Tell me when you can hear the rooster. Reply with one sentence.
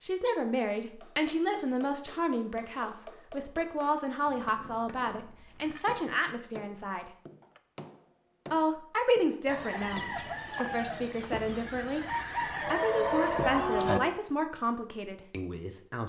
The rooster can be heard from 9.4 to 14.0 s.